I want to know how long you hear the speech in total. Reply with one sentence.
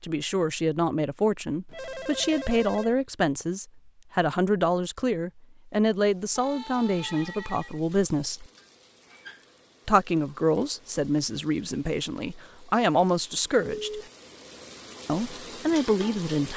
You can hear the speech for 14 seconds altogether.